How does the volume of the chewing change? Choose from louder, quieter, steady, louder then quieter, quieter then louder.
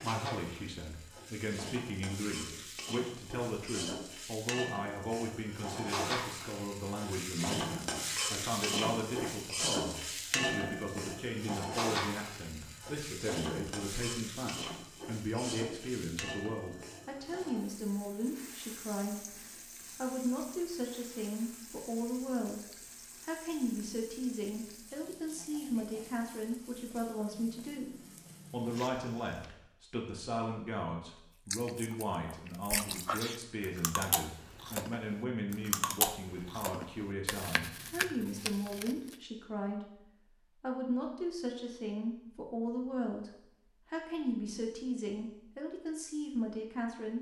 steady.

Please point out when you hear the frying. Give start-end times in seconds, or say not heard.
0.0-29.6.